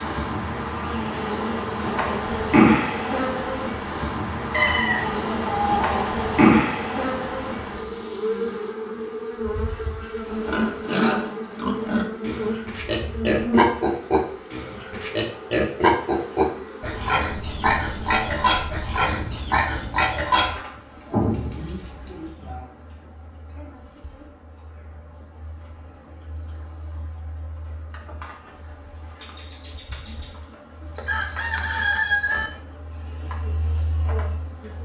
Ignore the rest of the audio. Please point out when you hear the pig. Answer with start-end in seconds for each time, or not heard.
10.2-20.6.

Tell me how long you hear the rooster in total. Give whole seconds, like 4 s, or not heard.
3 s.